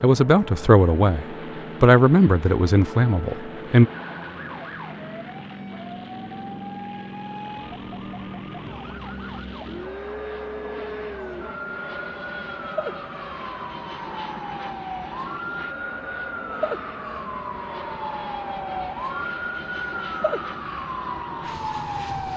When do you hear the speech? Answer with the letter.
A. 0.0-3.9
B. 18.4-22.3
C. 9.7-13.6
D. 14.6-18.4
A.